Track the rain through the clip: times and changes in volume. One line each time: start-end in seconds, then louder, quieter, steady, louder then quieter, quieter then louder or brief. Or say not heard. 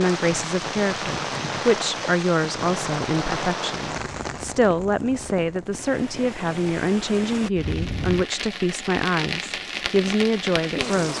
0.0-11.1 quieter then louder.